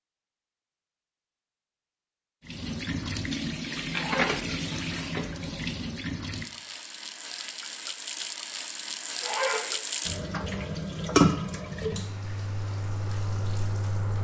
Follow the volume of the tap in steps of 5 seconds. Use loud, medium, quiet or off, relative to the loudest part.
loud, medium, loud.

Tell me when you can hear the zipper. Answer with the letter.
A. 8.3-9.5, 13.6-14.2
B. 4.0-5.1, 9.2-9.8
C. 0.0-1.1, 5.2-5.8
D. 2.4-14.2
B.